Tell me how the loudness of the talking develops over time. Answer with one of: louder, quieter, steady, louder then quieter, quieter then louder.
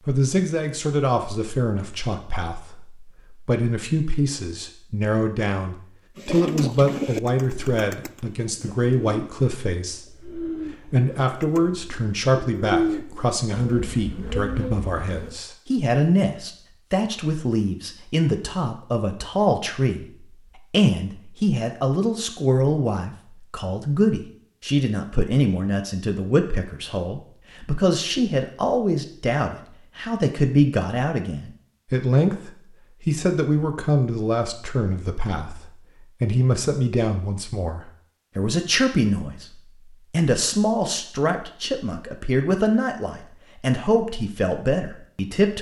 steady.